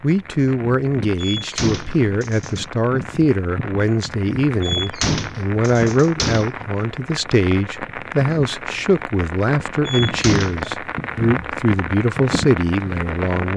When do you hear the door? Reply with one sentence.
You can hear the door from 1.1 to 2.6 s, from 4.6 to 6.5 s and from 9.8 to 10.6 s.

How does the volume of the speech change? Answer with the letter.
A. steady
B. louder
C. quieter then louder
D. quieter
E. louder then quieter
A.